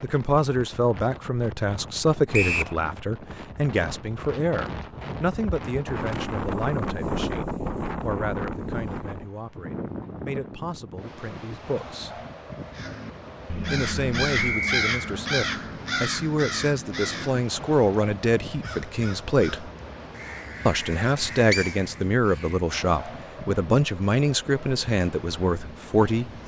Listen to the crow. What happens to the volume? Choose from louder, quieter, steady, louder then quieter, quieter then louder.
quieter.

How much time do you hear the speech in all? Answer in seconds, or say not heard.
24 s.